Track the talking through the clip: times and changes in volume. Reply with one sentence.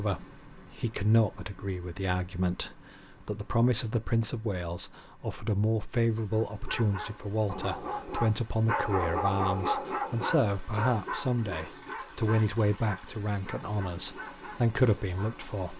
You can hear the talking from 0.0 to 15.7 s, at a steady volume.